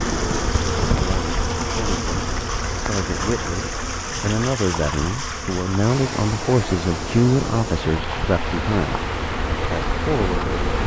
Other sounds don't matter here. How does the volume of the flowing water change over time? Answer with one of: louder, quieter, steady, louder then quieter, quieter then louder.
steady.